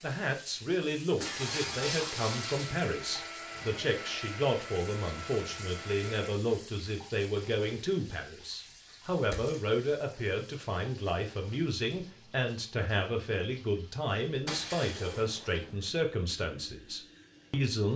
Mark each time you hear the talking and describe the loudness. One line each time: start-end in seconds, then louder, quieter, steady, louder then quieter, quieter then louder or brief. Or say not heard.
0.0-17.9 steady.